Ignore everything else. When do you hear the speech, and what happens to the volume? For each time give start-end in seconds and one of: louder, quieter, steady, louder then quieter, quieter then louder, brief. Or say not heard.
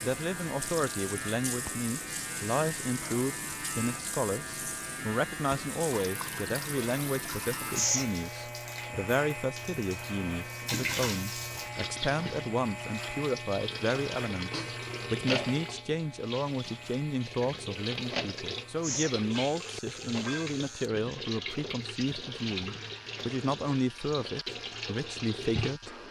0.0-25.9 steady.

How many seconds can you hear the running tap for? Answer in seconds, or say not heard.
26 s.